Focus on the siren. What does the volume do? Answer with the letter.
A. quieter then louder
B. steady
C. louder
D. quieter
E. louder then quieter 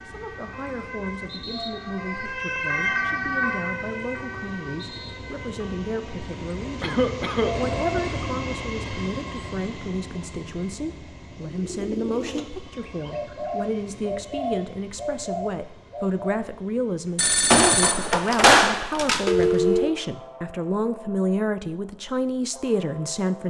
E.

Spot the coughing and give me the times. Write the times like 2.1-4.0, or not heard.
6.8-7.8.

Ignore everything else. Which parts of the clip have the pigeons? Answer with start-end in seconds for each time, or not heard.
11.4-16.5.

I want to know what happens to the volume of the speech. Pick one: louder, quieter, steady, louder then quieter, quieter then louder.
louder.